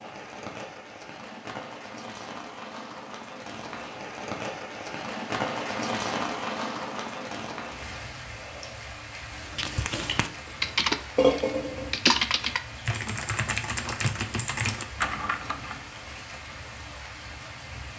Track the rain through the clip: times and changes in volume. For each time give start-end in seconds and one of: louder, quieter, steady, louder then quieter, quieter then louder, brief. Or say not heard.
0.0-17.9 louder then quieter.